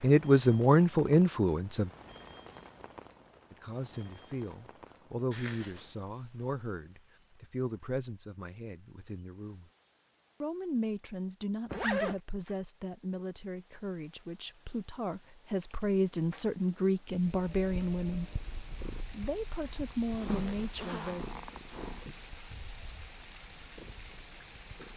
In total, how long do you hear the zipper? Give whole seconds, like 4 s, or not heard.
3 s.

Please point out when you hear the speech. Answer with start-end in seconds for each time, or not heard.
0.0-1.9, 3.5-9.7, 10.4-18.4, 19.1-21.4.